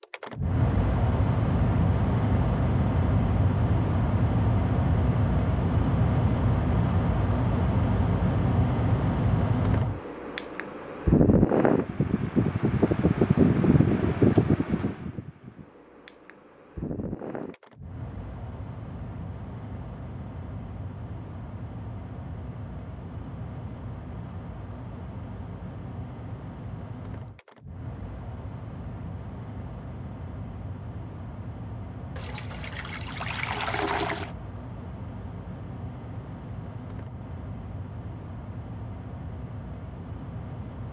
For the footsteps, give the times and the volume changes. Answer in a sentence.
You can't hear the footsteps here.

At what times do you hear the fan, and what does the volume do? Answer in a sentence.
You can hear the fan from 0.0 to 40.8 s, getting quieter.